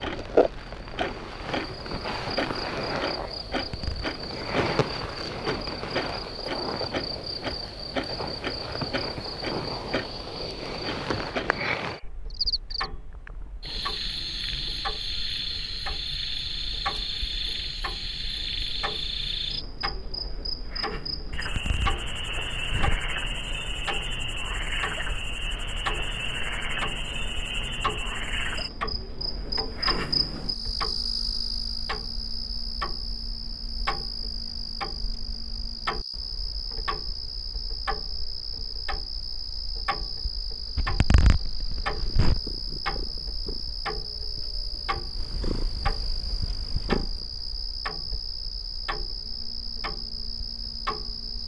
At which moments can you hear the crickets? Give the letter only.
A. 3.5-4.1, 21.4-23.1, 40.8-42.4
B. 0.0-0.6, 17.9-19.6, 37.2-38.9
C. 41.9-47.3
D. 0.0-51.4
D.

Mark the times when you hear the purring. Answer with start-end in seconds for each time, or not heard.
41.9-47.3.